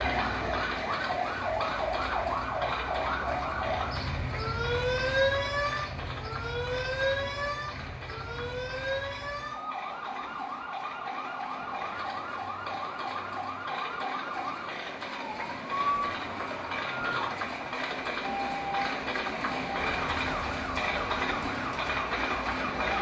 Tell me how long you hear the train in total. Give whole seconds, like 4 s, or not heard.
23 s.